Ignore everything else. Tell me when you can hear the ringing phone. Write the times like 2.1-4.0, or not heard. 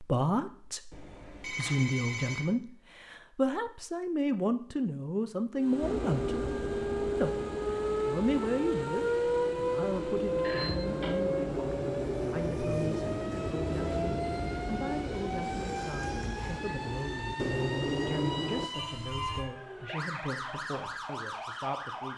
0.9-2.5, 10.4-11.2, 18.7-19.5.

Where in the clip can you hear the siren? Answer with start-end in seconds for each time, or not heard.
5.5-22.1.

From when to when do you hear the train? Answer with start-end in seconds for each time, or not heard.
5.8-18.7.